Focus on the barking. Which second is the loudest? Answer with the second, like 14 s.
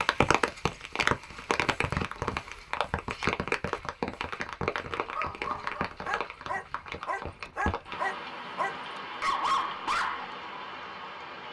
9 s.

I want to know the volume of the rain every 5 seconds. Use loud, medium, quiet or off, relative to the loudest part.
loud, medium, medium.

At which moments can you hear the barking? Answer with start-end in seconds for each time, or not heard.
5.1-10.2.